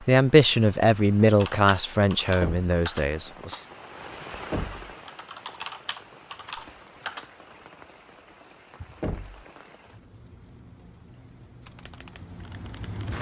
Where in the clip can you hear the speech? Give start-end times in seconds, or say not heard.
0.0-3.5.